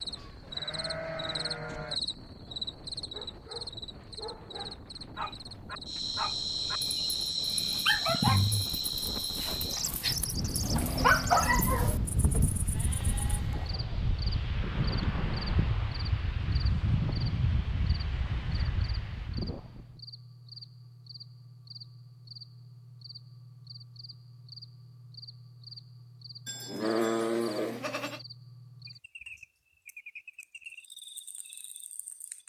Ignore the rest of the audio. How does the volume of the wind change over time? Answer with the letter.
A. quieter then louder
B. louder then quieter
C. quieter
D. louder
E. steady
D.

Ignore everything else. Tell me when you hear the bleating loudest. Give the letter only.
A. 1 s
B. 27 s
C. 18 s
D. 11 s
B.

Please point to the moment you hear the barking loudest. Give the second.
11 s.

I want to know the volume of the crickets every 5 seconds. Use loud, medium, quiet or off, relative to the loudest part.
medium, loud, medium, quiet, quiet, quiet, quiet.